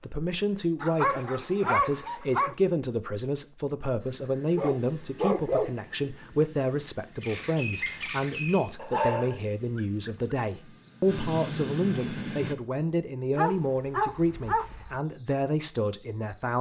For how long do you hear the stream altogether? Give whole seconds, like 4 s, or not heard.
not heard.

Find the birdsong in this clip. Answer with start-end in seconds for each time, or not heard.
7.2-16.5.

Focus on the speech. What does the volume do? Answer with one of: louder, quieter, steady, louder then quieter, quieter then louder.
steady.